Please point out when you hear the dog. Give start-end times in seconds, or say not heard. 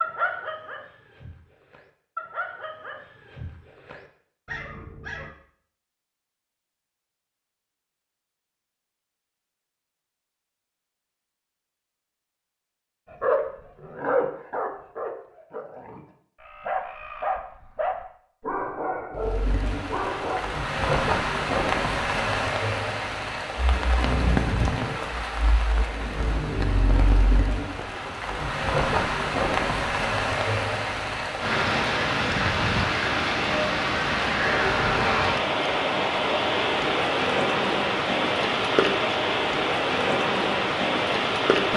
0.0-5.3, 13.1-20.4.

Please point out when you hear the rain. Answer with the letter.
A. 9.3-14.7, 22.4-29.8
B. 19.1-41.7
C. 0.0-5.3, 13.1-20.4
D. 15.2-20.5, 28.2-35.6
B.